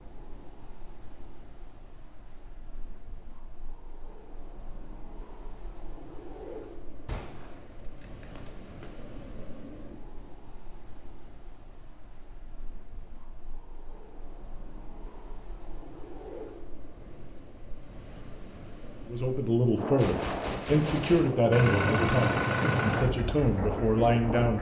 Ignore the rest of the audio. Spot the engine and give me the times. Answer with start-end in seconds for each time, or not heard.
21.5-24.5.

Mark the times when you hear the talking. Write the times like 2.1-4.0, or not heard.
19.1-24.5.